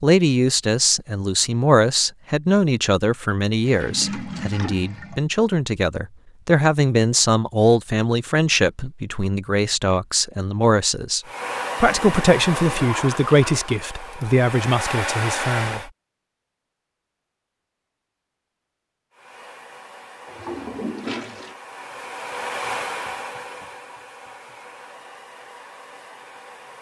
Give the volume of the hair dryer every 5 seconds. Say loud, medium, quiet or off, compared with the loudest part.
off, off, loud, loud, medium, quiet.